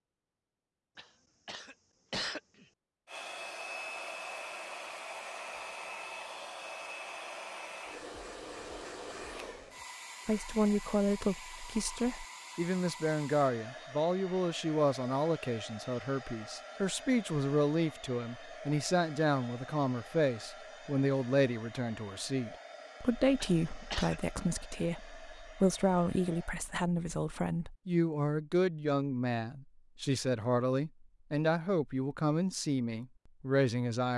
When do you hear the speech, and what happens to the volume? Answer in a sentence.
The speech can be heard from 10.2 to 34.1 s, at a steady volume.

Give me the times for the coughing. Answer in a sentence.
You can hear the coughing from 0.9 to 2.6 s and from 23.4 to 24.1 s.